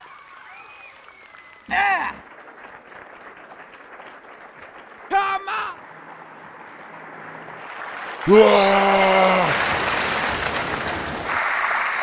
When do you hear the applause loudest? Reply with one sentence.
The volume of the applause peaks at 10 seconds.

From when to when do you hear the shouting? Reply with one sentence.
You can hear the shouting from 1.6 to 2.2 s, from 5.1 to 5.8 s and from 8.2 to 9.6 s.